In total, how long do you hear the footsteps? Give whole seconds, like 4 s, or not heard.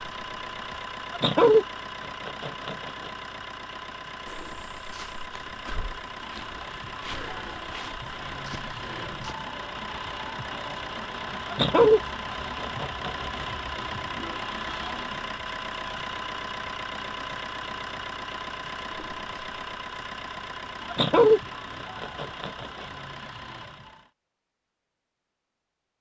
5 s.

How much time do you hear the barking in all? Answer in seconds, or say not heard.
5 s.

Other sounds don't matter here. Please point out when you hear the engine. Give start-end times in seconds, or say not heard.
0.0-24.1.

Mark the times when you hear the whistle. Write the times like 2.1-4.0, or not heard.
not heard.